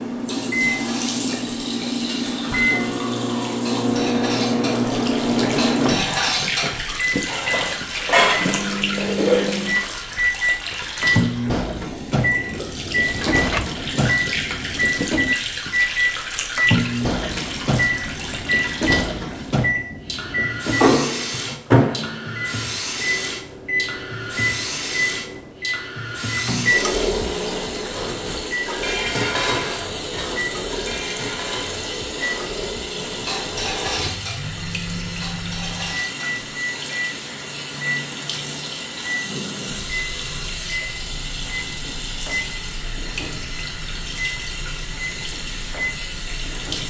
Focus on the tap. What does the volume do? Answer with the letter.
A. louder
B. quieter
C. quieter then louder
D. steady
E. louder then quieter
D.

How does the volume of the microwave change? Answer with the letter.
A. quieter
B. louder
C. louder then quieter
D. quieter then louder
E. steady
A.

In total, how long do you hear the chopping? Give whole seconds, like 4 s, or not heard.
not heard.